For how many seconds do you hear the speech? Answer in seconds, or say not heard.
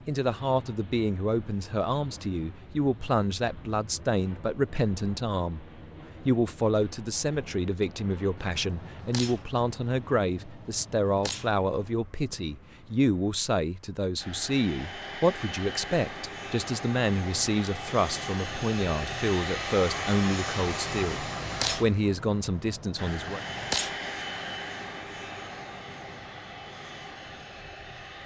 23 s.